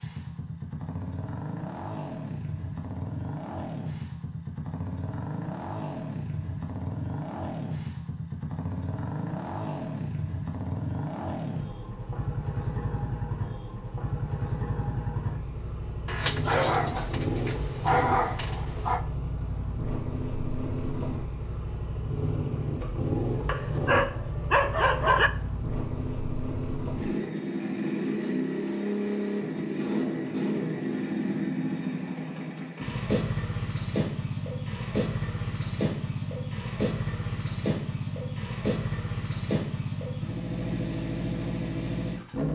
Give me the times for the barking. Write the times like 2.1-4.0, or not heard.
16.1-19.0, 23.4-25.3.